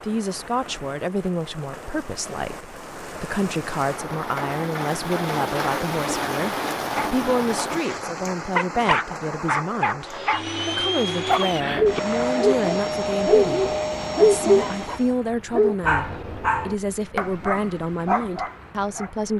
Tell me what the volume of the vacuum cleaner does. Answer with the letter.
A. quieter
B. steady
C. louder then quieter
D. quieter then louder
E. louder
B.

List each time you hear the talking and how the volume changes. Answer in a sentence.
The talking can be heard from 0.0 to 19.3 s, at a steady volume.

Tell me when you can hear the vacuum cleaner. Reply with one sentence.
The vacuum cleaner can be heard from 10.1 to 15.2 s.